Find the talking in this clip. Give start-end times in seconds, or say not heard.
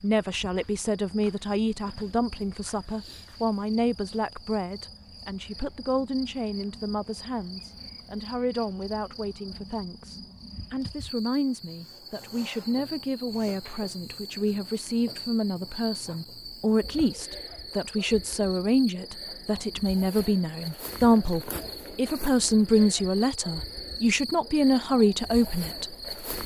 0.0-26.4.